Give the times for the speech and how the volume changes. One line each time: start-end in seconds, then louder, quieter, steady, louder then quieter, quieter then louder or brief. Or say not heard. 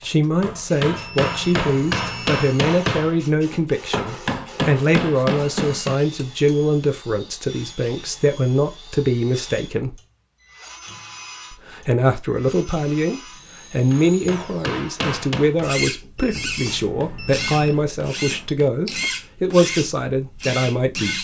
0.0-9.9 steady
11.5-21.1 steady.